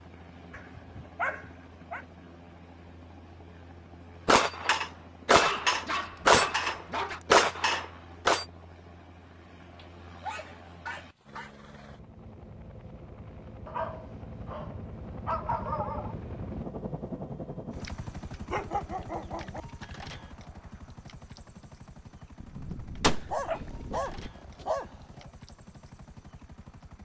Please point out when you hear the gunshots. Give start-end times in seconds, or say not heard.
4.2-8.4, 22.4-24.3.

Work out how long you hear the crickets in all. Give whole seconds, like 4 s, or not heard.
not heard.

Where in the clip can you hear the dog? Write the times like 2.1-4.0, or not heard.
0.5-2.0, 5.4-7.2, 9.8-11.5, 13.7-16.1, 18.5-19.6, 23.1-24.9.